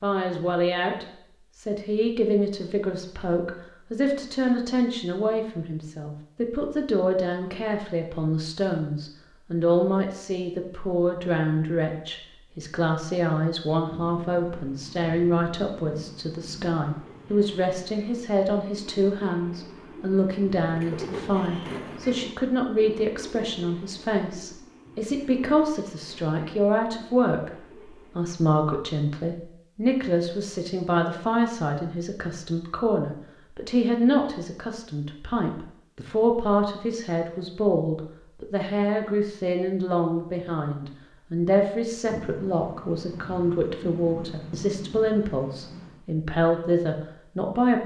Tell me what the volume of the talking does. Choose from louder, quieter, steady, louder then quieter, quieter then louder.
steady.